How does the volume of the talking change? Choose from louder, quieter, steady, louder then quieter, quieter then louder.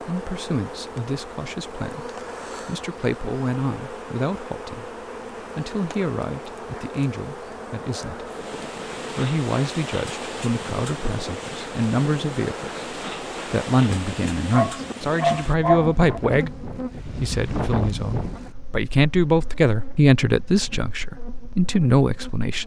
louder.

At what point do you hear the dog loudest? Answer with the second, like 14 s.
16 s.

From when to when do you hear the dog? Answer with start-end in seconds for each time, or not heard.
14.5-16.1.